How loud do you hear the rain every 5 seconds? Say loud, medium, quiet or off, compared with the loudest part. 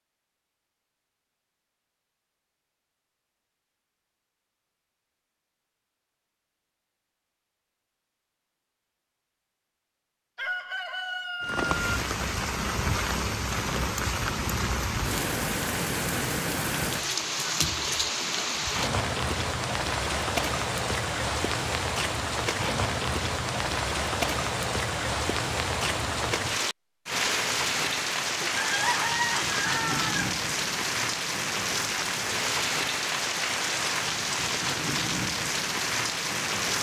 off, off, loud, loud, loud, loud, loud, loud.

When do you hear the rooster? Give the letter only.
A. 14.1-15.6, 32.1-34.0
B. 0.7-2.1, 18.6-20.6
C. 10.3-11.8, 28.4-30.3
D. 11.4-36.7
C.